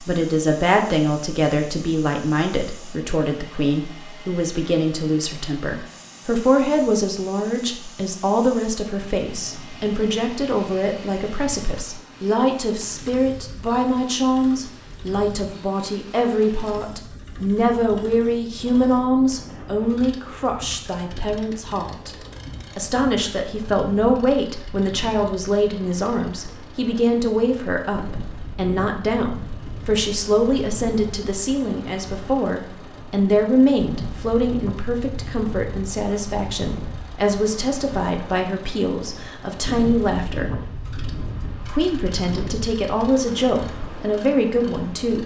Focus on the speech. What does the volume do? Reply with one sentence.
The loudness of the speech stays about the same.